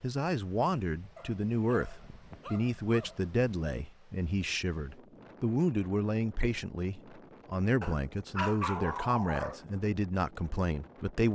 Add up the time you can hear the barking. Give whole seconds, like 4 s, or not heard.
4 s.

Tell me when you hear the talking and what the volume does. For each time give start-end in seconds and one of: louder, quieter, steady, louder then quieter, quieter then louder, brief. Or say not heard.
0.0-11.3 steady.